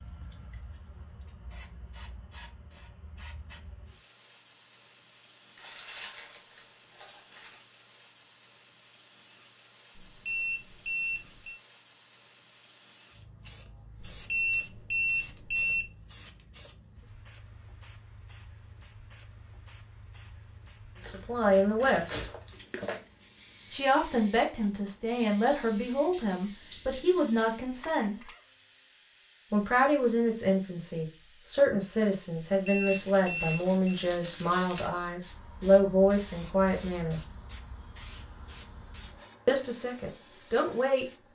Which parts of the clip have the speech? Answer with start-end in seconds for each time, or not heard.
21.1-22.2, 23.7-28.3, 29.5-37.2, 39.5-41.0.